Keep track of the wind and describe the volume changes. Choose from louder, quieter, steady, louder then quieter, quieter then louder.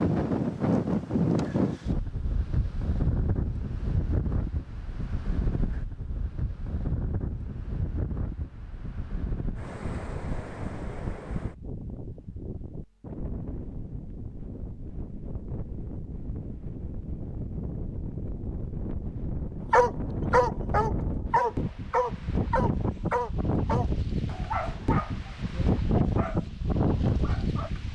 quieter then louder.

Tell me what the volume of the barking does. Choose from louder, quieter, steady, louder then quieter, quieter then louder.
quieter.